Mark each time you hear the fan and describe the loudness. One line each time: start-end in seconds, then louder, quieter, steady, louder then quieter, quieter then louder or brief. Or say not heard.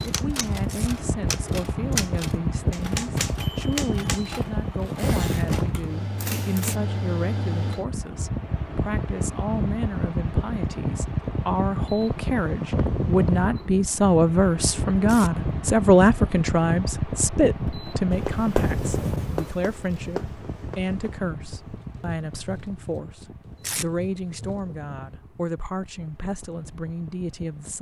0.0-27.7 quieter.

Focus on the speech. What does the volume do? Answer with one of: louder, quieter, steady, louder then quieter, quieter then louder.
louder then quieter.